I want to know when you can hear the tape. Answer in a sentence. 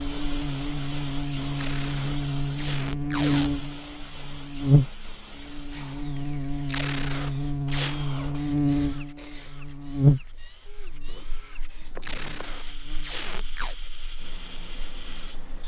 You can hear the tape from 1.6 to 3.5 s, from 6.7 to 8.0 s and from 12.0 to 13.8 s.